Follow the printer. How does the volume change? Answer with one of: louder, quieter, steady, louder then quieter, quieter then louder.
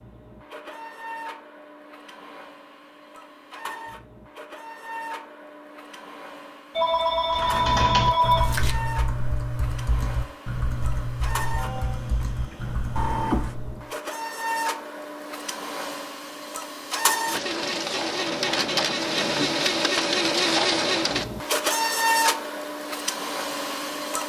louder.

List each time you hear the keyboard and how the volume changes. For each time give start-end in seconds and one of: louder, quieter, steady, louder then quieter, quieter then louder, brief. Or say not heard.
7.3-13.9 quieter.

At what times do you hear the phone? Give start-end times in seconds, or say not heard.
6.8-8.8.